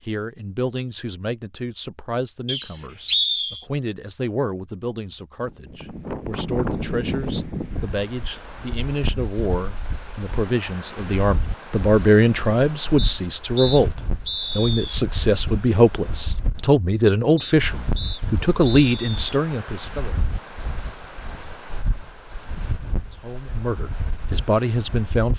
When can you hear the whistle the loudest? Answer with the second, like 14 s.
3 s.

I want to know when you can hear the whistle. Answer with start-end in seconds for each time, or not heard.
2.5-3.6, 12.9-15.0, 17.4-19.2.